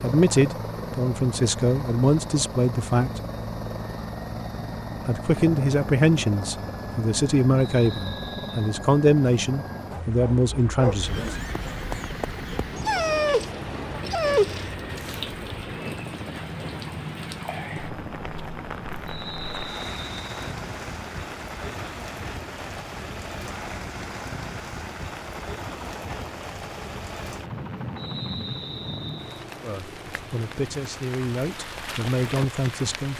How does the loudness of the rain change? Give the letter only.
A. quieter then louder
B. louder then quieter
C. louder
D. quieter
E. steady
E.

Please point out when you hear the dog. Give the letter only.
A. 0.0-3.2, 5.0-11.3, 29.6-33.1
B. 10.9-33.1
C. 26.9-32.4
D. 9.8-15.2
D.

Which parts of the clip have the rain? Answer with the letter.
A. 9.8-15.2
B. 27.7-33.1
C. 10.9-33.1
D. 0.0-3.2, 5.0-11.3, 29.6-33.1
C.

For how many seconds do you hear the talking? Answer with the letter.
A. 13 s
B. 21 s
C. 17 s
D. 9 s
A.